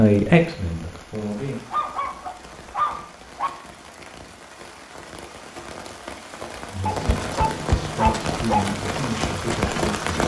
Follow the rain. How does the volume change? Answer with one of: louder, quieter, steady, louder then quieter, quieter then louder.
louder.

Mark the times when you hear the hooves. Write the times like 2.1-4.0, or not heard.
6.9-10.2.